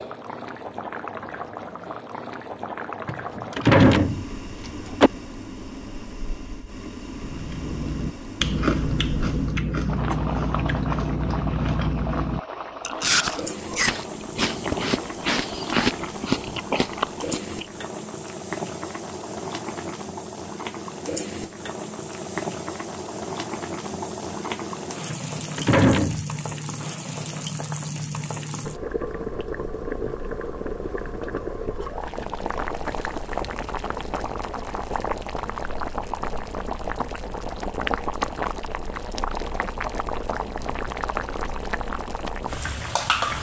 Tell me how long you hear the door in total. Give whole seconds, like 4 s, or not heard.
3 s.